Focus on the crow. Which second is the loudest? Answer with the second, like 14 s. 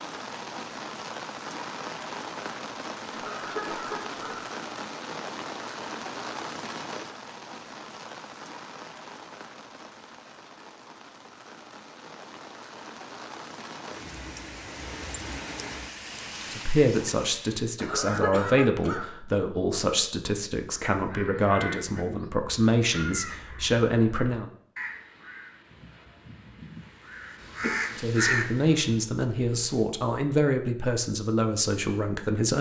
28 s.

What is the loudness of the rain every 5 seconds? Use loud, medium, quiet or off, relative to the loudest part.
loud, loud, medium, loud, off, off, off.